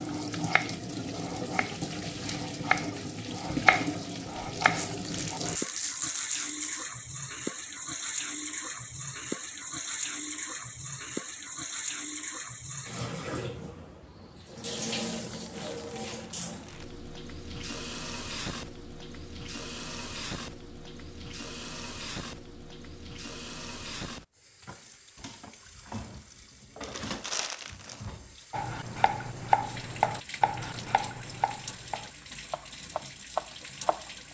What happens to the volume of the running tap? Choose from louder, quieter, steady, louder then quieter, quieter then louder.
quieter.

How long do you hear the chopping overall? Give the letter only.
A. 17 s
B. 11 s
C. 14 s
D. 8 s
B.